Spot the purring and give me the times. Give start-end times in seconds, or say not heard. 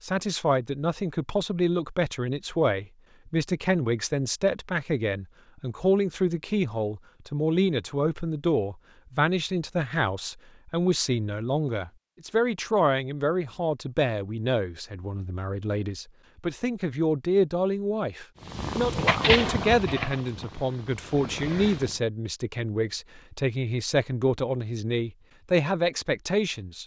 18.4-22.0.